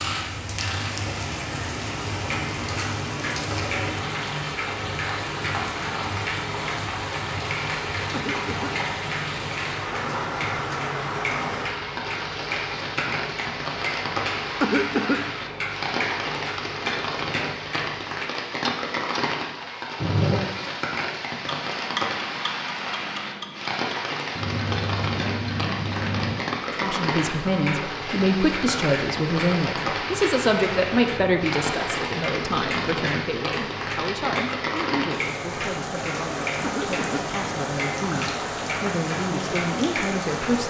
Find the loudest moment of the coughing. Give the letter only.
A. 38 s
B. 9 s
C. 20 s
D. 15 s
D.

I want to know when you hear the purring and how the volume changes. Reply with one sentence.
The purring can't be heard in this clip.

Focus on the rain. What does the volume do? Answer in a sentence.
The loudness of the rain stays about the same.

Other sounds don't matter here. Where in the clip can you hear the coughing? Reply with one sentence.
The coughing can be heard from 8.1 to 8.8 s, from 14.6 to 15.3 s and from 36.6 to 37.4 s.